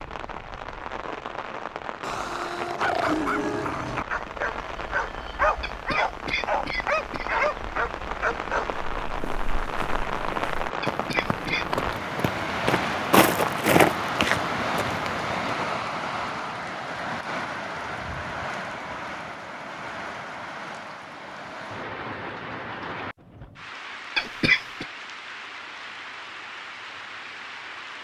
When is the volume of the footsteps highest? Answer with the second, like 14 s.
14 s.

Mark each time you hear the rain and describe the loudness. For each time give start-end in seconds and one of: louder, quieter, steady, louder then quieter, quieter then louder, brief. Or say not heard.
0.0-27.9 louder then quieter.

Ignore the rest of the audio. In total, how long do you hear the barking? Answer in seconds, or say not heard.
7 s.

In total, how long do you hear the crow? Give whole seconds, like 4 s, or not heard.
not heard.